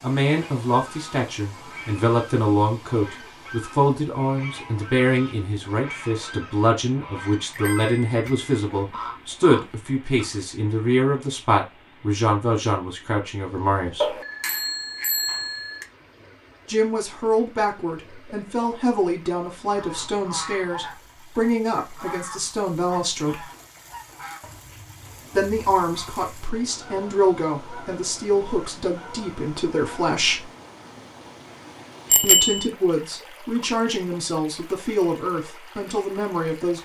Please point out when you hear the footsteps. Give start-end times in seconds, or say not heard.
not heard.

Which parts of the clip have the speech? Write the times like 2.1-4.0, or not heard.
0.0-14.2, 16.6-23.4, 25.4-30.4, 32.2-36.8.